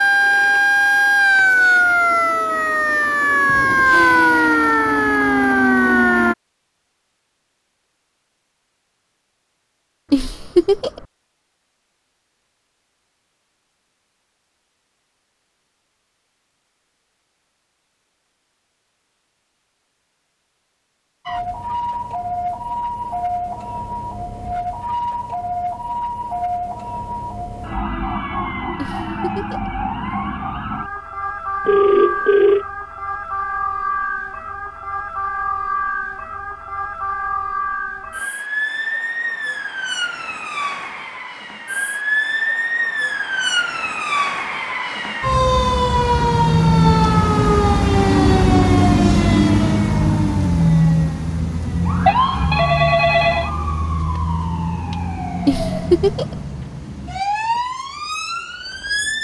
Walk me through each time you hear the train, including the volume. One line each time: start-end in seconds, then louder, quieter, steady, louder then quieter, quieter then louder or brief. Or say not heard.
not heard.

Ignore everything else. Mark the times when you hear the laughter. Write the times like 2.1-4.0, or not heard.
10.1-11.1, 28.8-29.7, 55.5-56.4.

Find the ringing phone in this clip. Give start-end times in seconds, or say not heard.
0.2-0.7, 1.4-2.0, 31.6-32.6, 52.0-53.5.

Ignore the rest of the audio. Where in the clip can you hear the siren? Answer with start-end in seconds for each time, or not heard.
0.0-6.3, 21.2-59.1.